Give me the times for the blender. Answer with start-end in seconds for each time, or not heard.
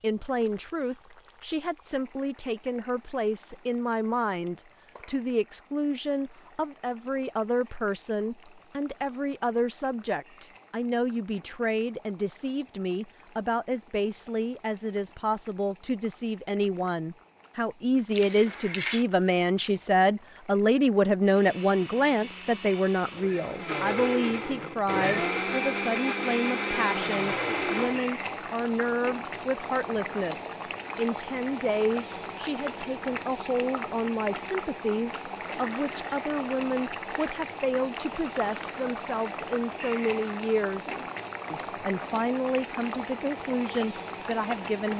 21.2-28.1.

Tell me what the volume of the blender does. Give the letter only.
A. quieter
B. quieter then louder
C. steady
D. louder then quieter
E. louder
E.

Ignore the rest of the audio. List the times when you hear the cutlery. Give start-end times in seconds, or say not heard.
18.1-19.1.